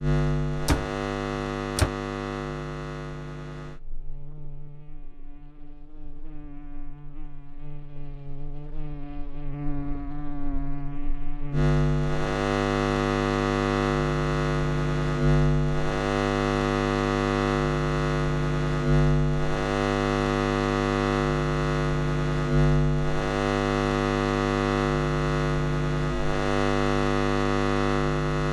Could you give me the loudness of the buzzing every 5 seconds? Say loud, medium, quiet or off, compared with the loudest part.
medium, quiet, loud, loud, loud, loud.